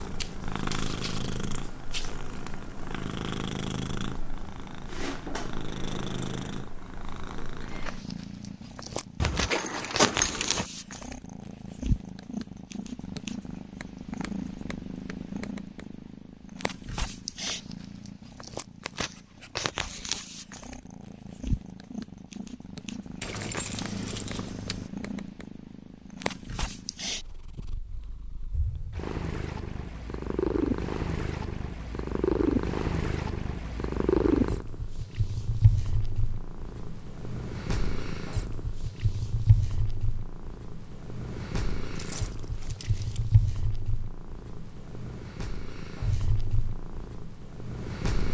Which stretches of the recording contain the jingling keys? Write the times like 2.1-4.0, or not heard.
9.2-10.7, 23.2-24.9, 42.0-43.2.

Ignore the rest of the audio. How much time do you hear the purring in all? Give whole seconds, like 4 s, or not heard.
48 s.